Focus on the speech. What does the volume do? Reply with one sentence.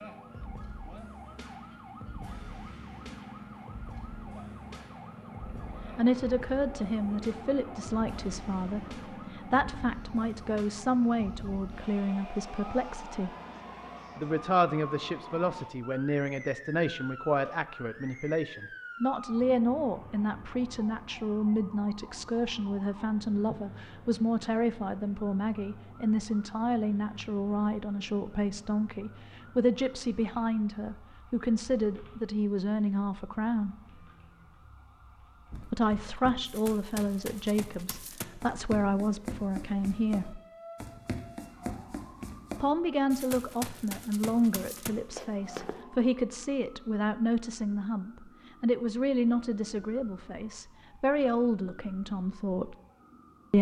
The volume of the speech stays about the same.